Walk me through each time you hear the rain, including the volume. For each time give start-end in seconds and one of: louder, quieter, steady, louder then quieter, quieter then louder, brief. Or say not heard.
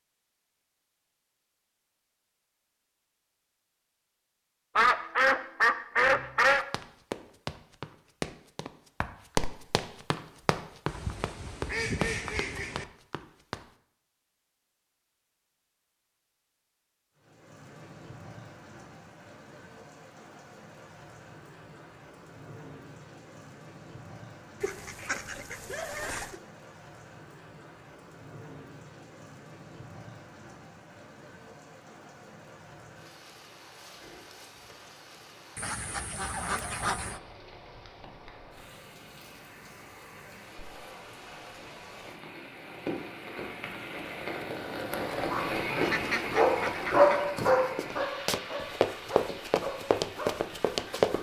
17.1-51.1 louder.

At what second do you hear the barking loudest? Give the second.
47 s.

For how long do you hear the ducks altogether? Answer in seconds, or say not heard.
9 s.